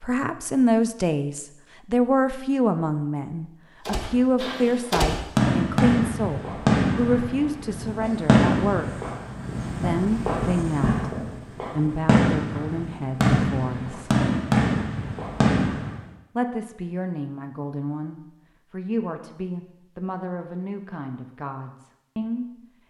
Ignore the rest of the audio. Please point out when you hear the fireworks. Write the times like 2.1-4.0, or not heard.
3.9-16.1.